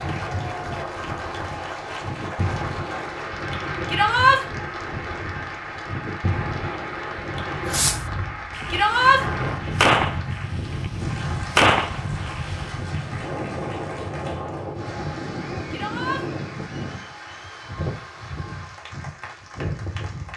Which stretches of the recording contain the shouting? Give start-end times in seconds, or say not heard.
3.9-4.4, 8.7-9.2, 15.7-16.2.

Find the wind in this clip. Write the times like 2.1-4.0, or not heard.
0.0-20.3.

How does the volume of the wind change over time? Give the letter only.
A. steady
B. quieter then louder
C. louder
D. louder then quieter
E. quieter
A.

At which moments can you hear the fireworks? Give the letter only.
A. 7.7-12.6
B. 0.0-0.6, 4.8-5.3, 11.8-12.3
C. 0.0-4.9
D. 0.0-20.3
A.